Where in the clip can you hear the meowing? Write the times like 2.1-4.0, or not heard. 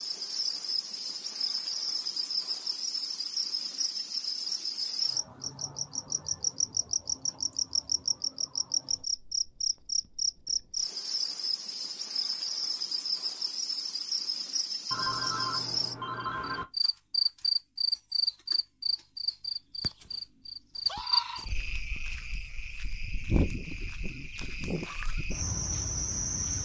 not heard.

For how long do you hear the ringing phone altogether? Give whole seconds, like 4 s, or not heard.
2 s.